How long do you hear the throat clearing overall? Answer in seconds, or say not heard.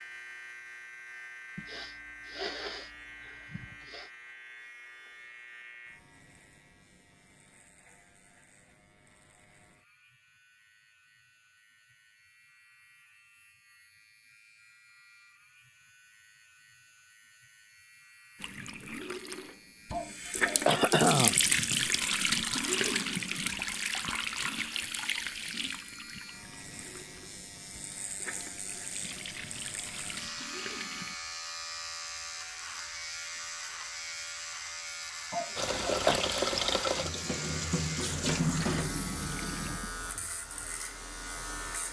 5 s.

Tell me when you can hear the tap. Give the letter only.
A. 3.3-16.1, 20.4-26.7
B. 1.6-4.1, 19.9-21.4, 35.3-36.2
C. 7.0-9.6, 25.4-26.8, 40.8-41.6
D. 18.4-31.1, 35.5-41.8
D.